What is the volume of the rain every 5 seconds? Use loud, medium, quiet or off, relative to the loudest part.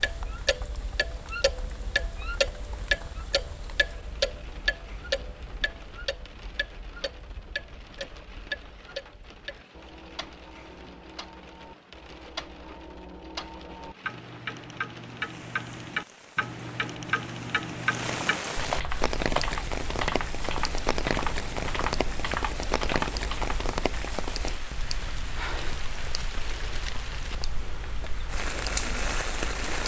quiet, quiet, quiet, loud, loud, loud.